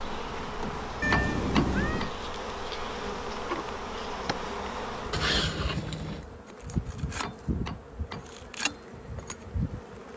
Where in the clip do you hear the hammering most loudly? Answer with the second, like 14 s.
1 s.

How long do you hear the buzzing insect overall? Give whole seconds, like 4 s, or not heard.
10 s.